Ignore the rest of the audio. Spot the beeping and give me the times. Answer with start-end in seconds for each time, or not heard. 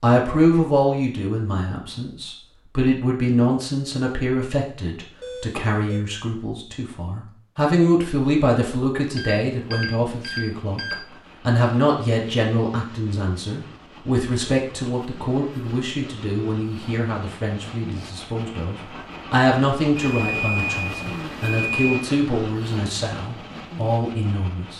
5.2-6.0, 9.2-10.9, 19.9-22.1.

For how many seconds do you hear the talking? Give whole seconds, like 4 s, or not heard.
25 s.